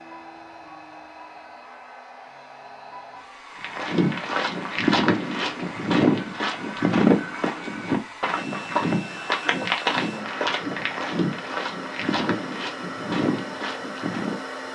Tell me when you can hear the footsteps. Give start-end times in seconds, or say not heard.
3.6-14.4.